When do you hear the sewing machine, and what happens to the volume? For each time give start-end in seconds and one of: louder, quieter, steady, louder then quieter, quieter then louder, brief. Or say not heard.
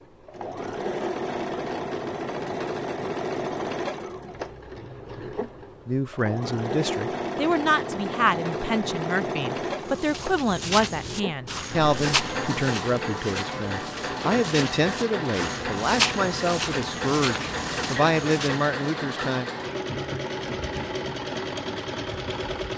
0.0-22.7 steady.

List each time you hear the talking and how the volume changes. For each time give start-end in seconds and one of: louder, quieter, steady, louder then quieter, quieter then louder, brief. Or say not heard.
5.8-19.5 steady.